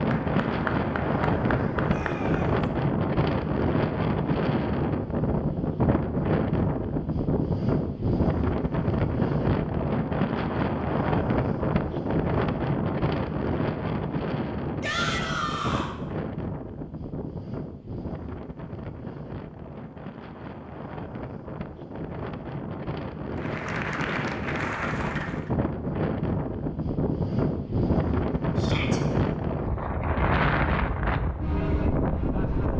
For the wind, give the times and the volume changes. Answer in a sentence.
You can hear the wind from 0.0 to 32.7 s, getting quieter then louder.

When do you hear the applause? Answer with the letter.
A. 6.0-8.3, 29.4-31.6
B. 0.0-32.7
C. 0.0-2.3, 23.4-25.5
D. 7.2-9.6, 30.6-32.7
C.